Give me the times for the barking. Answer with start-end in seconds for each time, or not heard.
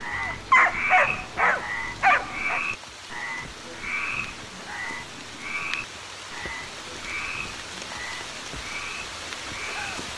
0.1-2.6.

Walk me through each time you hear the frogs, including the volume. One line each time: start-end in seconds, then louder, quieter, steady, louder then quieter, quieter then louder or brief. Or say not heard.
0.0-10.1 quieter.